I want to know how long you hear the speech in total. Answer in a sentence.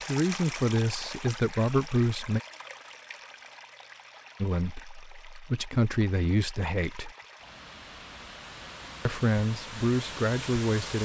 You can hear the speech for 7 seconds altogether.